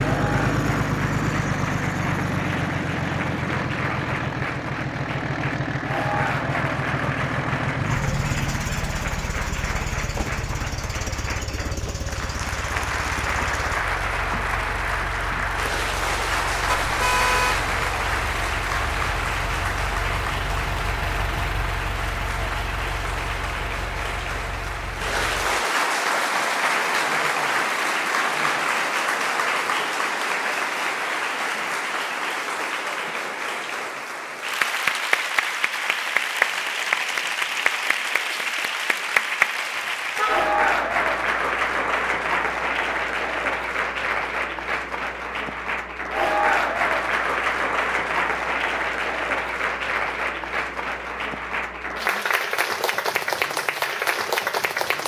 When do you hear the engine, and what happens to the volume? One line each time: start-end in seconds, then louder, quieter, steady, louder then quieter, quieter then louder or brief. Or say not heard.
0.0-25.6 quieter.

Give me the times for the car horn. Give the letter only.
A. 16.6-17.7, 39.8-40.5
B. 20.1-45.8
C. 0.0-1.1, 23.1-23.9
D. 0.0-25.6
A.